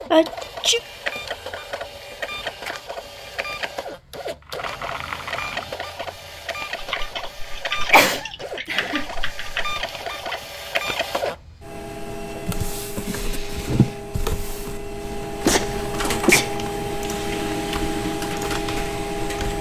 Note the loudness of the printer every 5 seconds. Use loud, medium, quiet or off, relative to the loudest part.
medium, medium, loud, loud.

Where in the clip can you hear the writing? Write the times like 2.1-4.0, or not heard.
not heard.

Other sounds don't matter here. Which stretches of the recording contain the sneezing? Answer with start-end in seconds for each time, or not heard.
0.1-0.8, 7.9-9.1, 15.1-16.7.